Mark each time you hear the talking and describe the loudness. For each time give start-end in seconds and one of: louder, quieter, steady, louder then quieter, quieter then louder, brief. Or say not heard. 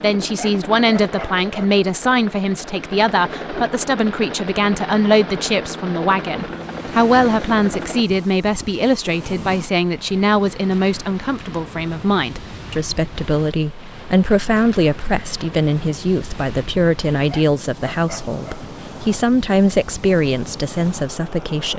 0.0-21.7 steady.